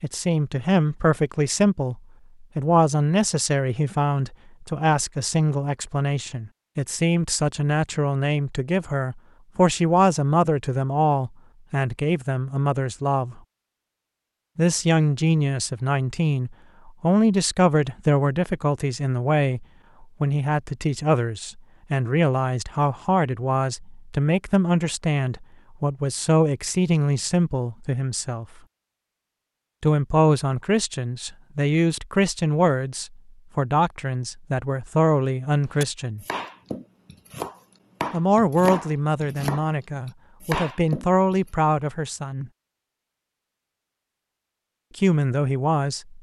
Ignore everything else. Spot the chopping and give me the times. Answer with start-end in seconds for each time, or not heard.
35.6-41.5.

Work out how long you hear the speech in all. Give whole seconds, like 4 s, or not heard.
39 s.